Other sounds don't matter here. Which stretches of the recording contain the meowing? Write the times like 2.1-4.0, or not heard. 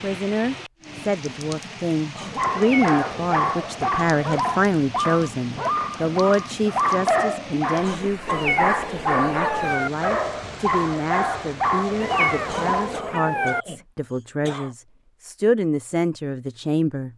2.5-3.4, 8.2-9.9, 12.0-13.7.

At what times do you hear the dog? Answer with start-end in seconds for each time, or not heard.
2.4-13.0.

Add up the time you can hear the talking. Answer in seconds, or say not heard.
17 s.